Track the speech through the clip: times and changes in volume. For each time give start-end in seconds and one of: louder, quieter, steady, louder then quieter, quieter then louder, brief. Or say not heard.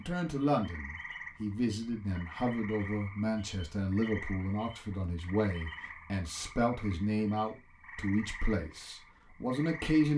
0.0-10.1 steady.